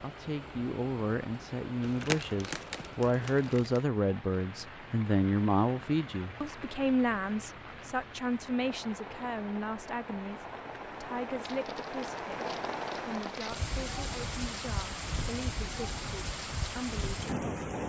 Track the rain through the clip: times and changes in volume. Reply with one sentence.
The rain can be heard from 0.0 to 17.8 s, getting louder.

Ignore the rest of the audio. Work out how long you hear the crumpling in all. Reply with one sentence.
The crumpling can be heard for 4 seconds in total.